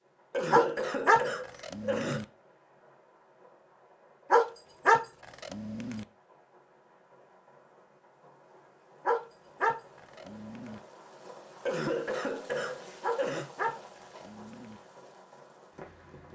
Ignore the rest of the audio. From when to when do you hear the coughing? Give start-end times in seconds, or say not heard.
0.3-2.2, 11.7-13.4.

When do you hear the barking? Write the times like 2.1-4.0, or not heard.
0.5-2.2, 4.3-6.0, 9.1-10.8, 13.0-14.8.